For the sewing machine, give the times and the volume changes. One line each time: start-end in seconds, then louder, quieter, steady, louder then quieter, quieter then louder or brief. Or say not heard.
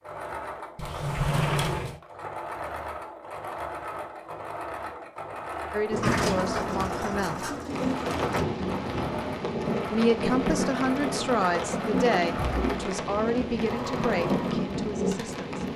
0.0-15.4 steady.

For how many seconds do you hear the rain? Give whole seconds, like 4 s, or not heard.
8 s.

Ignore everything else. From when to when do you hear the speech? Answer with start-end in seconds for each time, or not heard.
5.7-7.5, 9.9-15.7.